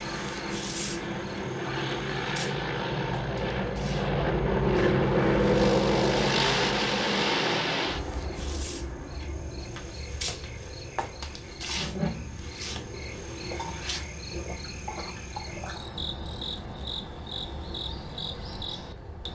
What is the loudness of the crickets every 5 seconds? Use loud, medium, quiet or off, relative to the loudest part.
medium, medium, loud, loud.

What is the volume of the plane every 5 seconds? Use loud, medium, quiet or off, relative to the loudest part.
loud, loud, quiet, quiet.